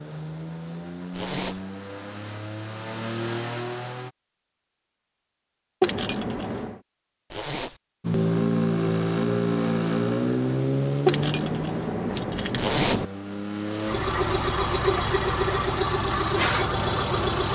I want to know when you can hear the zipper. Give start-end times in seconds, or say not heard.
1.1-1.6, 7.3-7.8, 12.6-13.1.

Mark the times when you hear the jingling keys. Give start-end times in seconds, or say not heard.
5.8-6.8, 11.1-13.1.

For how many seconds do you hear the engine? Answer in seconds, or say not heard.
14 s.